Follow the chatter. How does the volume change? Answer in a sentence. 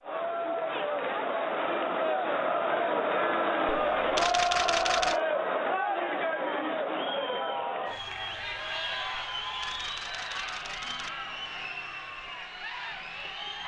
The volume of the chatter goes down.